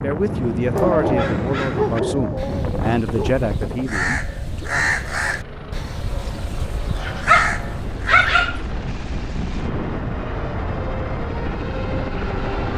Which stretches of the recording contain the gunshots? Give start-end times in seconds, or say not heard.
not heard.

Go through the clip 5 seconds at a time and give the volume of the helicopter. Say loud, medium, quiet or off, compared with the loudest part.
off, medium, loud.